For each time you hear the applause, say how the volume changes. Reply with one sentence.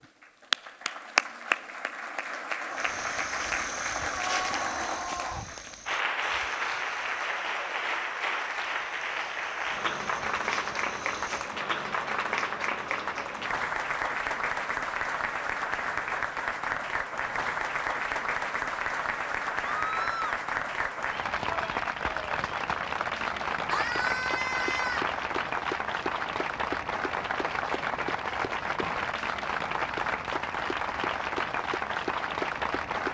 The applause can be heard from 0.0 to 33.0 s, at a steady volume.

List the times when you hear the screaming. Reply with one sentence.
You can hear the screaming from 4.1 to 5.5 s, from 19.8 to 20.4 s and from 23.7 to 25.1 s.